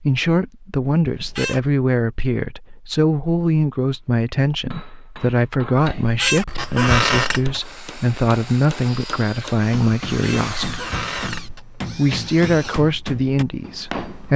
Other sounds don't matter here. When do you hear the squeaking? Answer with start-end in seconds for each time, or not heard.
1.1-1.7, 6.0-7.6, 10.1-11.7.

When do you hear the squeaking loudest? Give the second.
7 s.